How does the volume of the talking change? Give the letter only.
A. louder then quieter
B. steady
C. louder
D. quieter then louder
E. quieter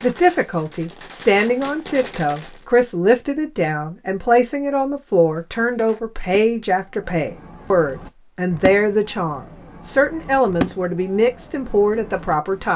B.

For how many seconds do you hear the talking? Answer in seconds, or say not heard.
13 s.